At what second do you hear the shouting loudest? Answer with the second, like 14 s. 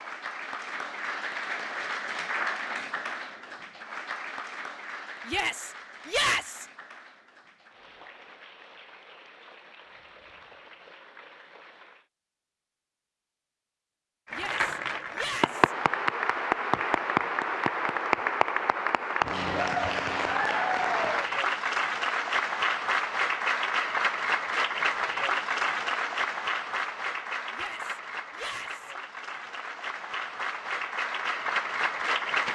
6 s.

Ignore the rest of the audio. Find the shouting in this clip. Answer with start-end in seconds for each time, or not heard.
5.2-6.7, 14.3-15.8, 27.5-28.9.